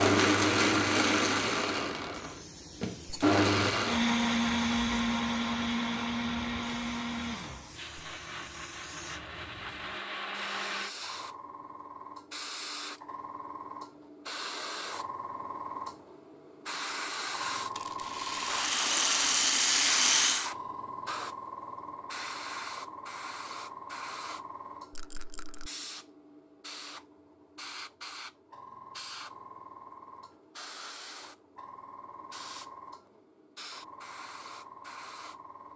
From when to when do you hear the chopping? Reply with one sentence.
You can't hear the chopping here.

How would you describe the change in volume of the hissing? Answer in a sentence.
The loudness of the hissing goes up, then down.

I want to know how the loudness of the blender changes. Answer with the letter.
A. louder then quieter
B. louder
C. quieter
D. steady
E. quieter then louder
C.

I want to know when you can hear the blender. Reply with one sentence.
You can hear the blender from 0.0 to 10.9 s.